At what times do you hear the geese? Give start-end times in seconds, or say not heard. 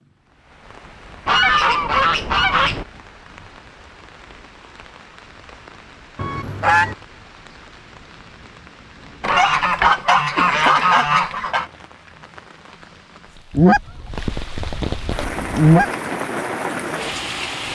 1.2-2.9, 6.2-7.0, 9.2-11.7, 13.5-15.8.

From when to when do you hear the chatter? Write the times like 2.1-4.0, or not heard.
not heard.